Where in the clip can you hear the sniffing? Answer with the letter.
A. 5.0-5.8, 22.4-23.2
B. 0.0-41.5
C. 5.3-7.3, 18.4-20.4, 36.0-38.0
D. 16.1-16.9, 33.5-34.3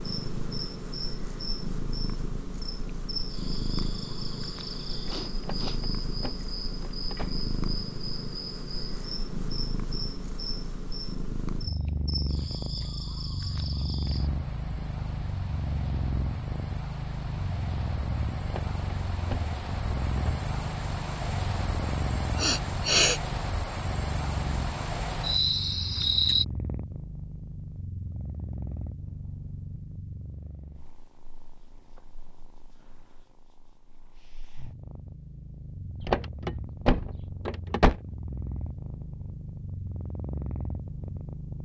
A.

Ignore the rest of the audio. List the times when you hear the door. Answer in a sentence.
The door can be heard from 5.3 to 7.3 s, from 18.4 to 20.4 s and from 36.0 to 38.0 s.